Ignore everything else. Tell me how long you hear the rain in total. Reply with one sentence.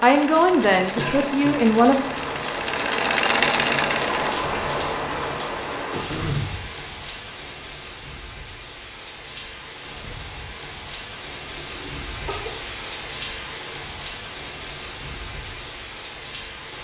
You can hear the rain for 17 seconds altogether.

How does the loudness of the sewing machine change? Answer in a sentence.
The volume of the sewing machine goes up.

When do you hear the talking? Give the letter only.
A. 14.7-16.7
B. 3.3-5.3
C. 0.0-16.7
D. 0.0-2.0
D.